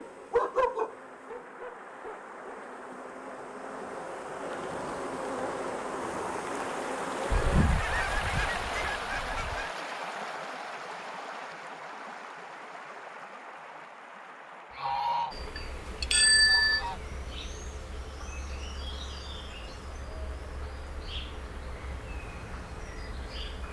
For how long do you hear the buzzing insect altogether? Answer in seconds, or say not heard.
16 s.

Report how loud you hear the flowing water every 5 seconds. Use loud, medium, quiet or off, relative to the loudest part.
medium, loud, medium, quiet, quiet.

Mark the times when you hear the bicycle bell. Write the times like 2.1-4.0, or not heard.
15.6-16.9.